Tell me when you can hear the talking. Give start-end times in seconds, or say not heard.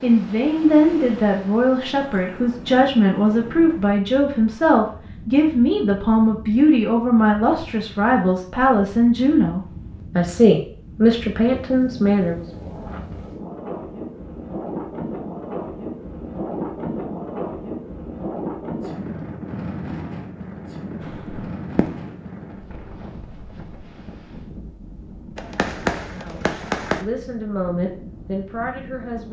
0.0-12.4, 26.1-29.2.